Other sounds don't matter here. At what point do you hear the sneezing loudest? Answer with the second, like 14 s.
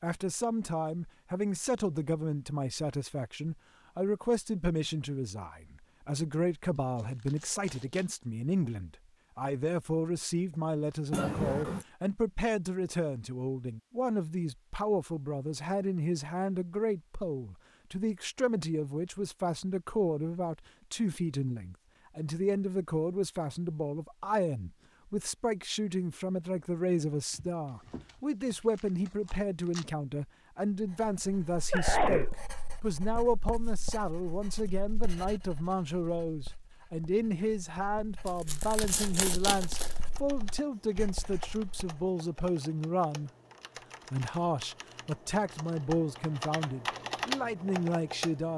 32 s.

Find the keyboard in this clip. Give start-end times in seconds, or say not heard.
39.9-48.5.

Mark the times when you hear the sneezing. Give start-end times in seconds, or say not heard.
11.1-11.8, 31.7-32.3.